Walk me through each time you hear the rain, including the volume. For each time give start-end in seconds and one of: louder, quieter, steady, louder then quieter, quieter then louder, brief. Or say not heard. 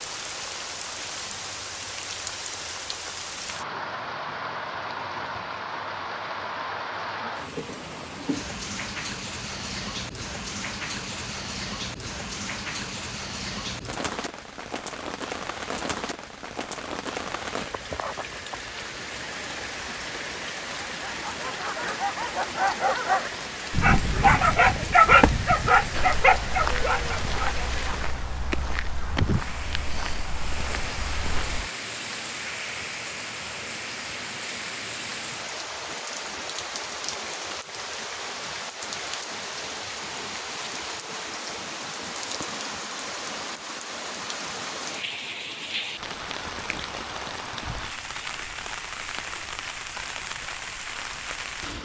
0.0-51.8 steady.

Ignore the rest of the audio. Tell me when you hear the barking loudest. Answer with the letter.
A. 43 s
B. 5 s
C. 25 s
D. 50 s
C.